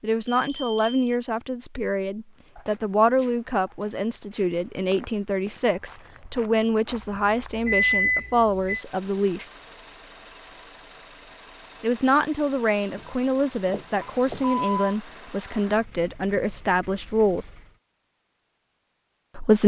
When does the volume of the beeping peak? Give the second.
8 s.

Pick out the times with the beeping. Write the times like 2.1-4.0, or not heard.
0.2-1.1, 7.2-8.8, 14.0-14.9.